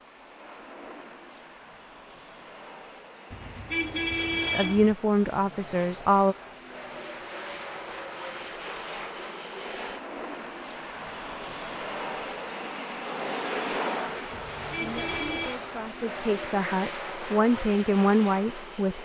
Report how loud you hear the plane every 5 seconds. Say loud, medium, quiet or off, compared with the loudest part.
medium, medium, loud, loud.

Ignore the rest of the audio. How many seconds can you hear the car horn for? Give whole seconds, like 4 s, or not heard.
3 s.